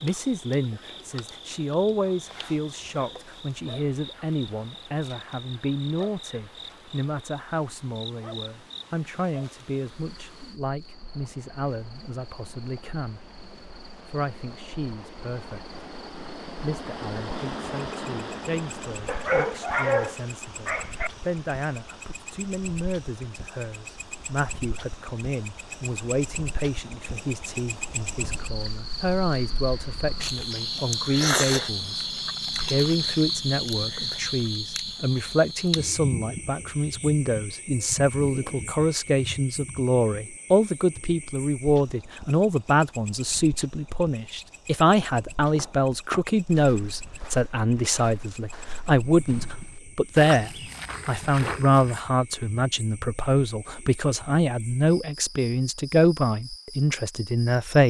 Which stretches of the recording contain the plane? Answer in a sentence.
The plane can't be heard in this clip.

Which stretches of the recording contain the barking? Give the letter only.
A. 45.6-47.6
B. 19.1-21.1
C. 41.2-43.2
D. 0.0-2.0
B.